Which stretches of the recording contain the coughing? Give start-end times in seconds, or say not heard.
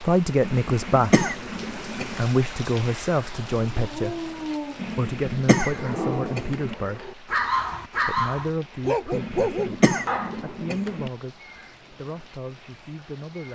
0.4-2.2, 4.8-6.8, 9.1-11.1.